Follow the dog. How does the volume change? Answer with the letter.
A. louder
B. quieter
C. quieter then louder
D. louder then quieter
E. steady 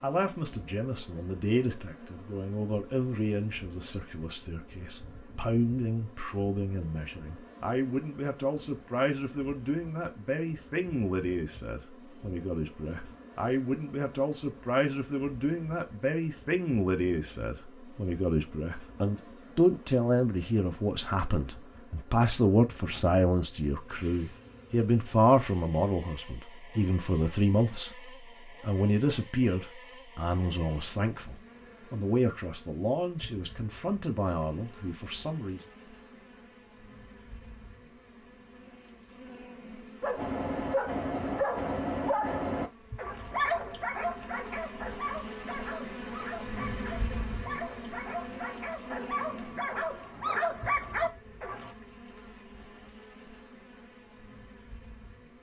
C.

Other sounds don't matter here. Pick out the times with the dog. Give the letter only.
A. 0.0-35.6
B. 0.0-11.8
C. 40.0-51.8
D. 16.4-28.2
C.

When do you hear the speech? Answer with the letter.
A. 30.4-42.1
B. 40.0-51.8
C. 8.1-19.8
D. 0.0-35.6
D.